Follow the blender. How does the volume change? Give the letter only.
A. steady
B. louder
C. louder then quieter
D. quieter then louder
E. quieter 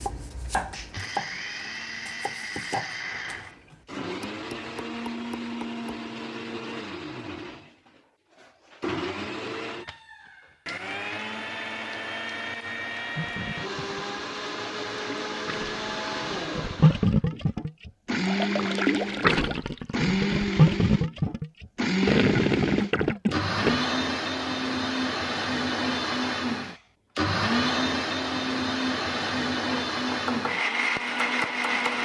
B.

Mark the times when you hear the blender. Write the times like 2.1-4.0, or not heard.
0.0-31.9.